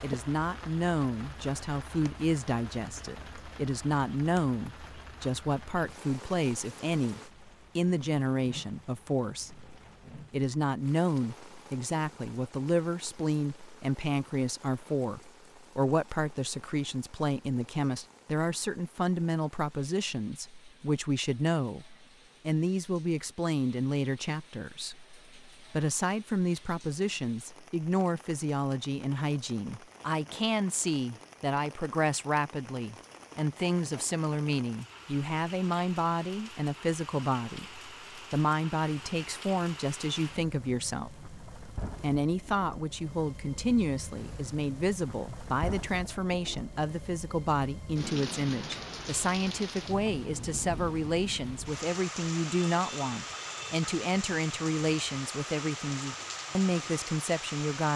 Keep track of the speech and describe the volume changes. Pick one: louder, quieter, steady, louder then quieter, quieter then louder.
steady.